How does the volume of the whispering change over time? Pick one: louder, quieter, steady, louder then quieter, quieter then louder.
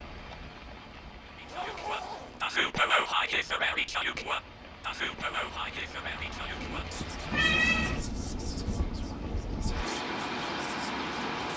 quieter.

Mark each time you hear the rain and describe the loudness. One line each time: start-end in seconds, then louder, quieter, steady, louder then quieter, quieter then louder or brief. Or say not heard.
0.0-11.5 louder.